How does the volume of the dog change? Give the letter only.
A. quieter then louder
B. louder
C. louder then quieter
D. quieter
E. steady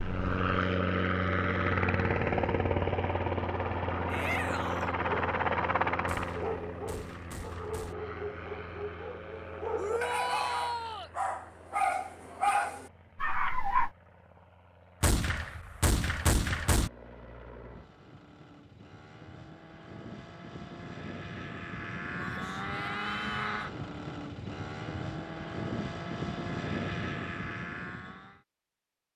B.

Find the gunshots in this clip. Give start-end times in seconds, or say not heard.
6.0-8.0, 15.0-16.9.